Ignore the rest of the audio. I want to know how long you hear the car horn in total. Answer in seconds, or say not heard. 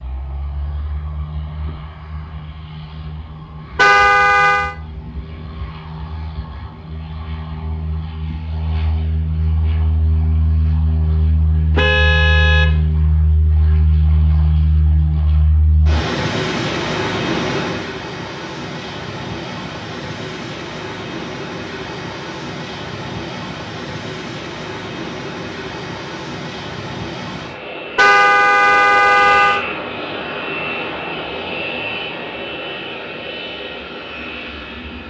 4 s.